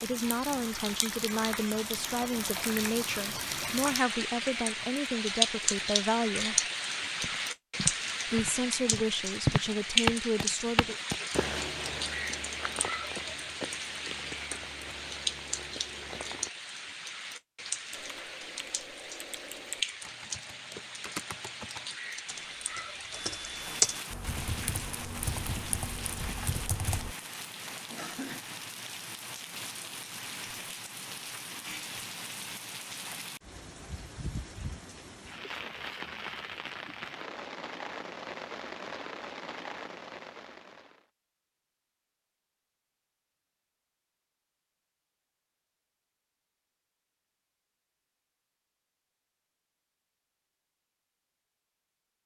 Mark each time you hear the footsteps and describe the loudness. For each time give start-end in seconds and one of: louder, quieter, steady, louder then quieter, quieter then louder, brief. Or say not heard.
7.2-16.5 louder then quieter.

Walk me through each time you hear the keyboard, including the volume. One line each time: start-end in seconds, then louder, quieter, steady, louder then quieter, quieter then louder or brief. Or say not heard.
17.9-27.1 louder then quieter.